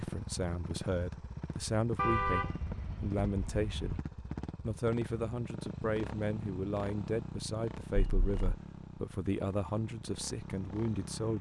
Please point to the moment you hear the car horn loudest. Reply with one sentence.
The volume of the car horn peaks at 2 seconds.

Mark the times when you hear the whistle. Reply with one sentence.
The whistle can't be heard in this clip.